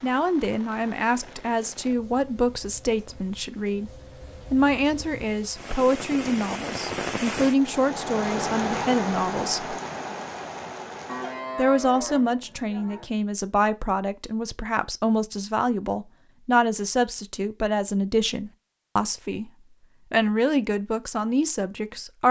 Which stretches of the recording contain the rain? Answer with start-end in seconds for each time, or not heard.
0.0-11.4.